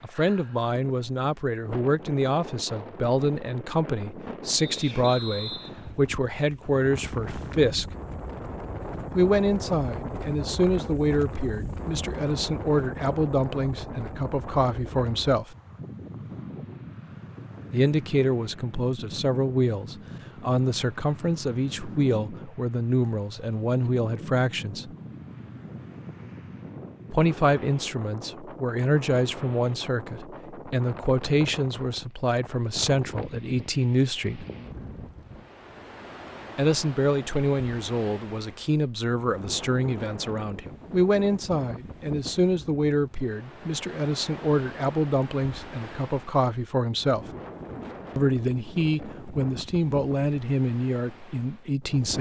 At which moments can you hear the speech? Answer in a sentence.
The speech can be heard from 0.0 to 7.9 s, from 9.2 to 15.6 s, from 17.7 to 24.9 s, from 27.1 to 34.5 s, from 36.5 to 47.2 s and from 48.1 to 52.1 s.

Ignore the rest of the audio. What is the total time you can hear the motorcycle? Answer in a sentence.
The motorcycle can't be heard in this clip.